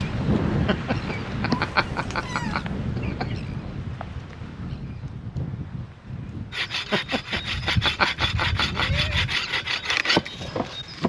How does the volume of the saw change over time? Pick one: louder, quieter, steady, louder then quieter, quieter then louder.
louder.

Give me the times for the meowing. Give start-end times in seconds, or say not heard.
1.5-2.7, 7.3-9.3.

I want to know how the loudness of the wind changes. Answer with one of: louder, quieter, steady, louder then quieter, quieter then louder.
quieter.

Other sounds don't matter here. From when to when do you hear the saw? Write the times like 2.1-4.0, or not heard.
6.5-11.0.